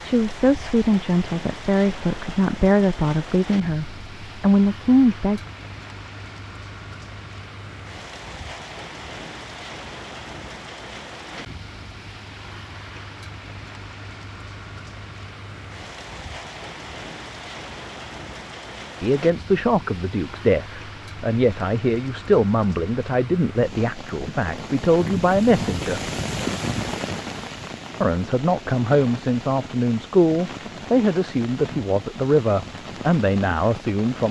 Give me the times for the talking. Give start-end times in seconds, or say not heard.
0.0-5.4, 19.0-26.1, 28.0-34.2.